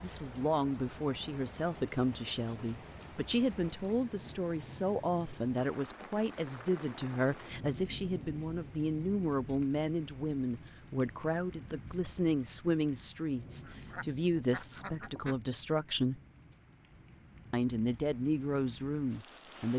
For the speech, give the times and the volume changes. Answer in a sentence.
You can hear the speech from 0.0 to 16.2 s, at a steady volume; and briefly from 17.5 to 19.7 s.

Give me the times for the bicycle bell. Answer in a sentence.
The bicycle bell can't be heard in this clip.